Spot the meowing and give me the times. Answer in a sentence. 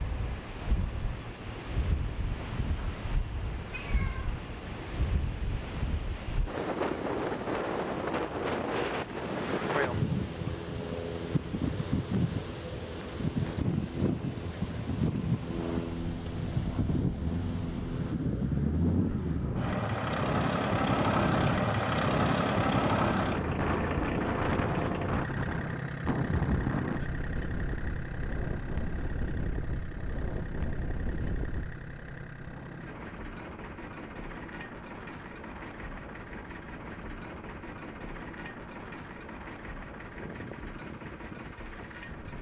You can hear the meowing from 2.8 to 5.0 s.